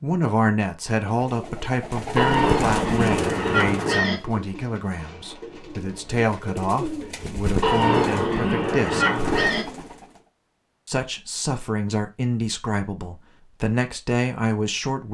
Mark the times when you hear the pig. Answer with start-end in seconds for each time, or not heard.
2.1-4.2, 7.6-9.7.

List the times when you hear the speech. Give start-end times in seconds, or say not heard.
0.0-9.1, 10.8-15.1.